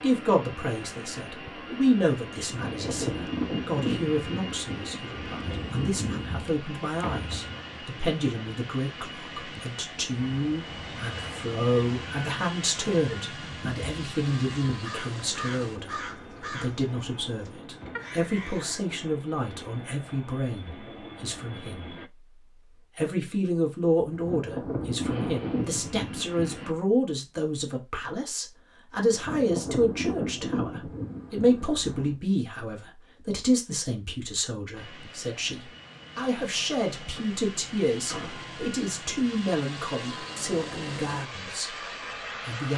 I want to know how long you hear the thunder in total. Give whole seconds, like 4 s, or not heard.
10 s.